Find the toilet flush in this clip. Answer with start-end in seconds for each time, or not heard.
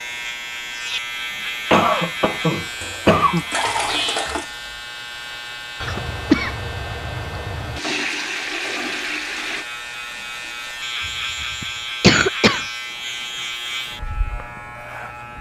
2.8-4.5, 7.8-9.7.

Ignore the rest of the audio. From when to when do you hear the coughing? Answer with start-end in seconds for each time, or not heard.
1.7-3.5, 5.8-7.8, 11.0-12.7.